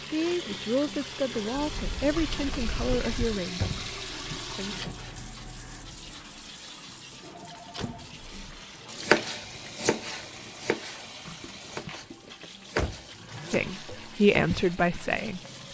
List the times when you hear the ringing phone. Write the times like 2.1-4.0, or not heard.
7.3-8.6.